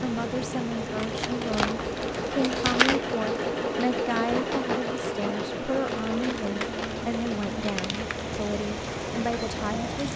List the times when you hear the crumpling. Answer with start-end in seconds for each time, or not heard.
0.9-3.0, 5.8-8.2.